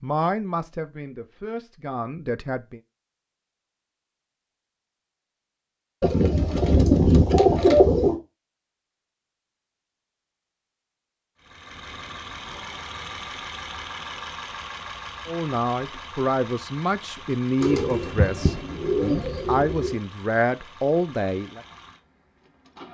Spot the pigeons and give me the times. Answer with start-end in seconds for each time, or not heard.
6.0-8.2, 17.6-19.9.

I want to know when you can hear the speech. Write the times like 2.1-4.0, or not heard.
0.0-2.8, 15.2-21.6.